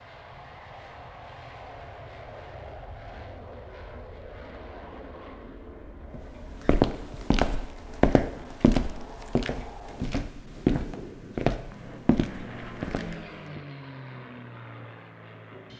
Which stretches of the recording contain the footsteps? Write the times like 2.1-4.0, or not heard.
6.1-13.6.